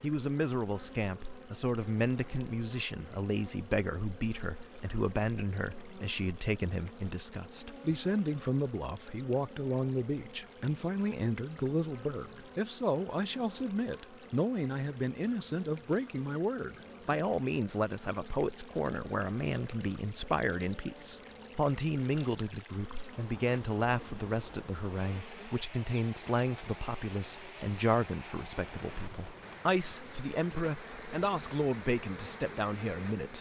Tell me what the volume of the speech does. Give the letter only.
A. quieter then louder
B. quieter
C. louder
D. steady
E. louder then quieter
D.